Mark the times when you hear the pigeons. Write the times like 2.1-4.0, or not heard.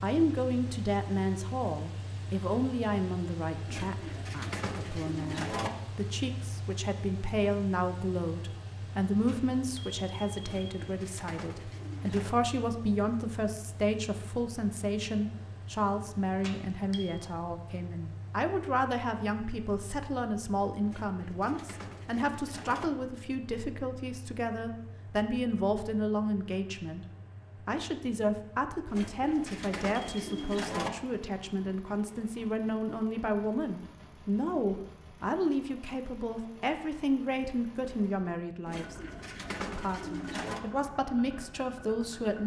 3.6-5.7, 10.4-12.3, 20.9-22.9, 28.9-30.9, 38.6-40.6.